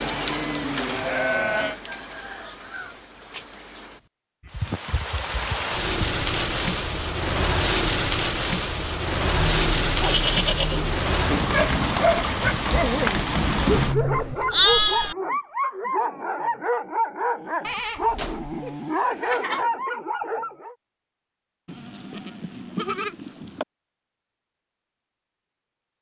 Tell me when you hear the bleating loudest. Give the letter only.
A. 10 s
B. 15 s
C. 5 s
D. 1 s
B.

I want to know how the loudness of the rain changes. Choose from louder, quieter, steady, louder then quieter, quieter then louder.
louder.